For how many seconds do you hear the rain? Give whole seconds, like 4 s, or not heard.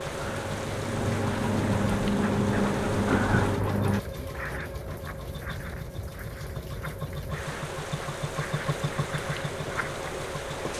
11 s.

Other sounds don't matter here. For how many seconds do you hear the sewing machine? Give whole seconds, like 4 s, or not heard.
11 s.